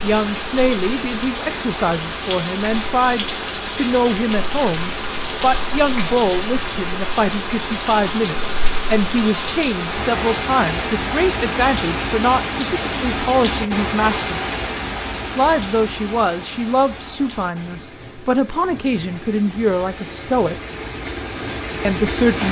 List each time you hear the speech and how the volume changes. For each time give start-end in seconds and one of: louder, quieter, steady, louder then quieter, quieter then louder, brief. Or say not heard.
0.0-14.3 steady
15.3-20.6 steady
21.9-22.4 brief.